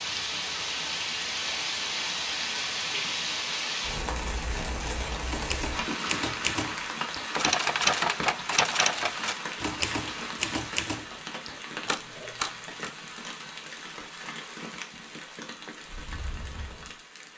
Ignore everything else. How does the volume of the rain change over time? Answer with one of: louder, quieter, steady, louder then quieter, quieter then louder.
quieter.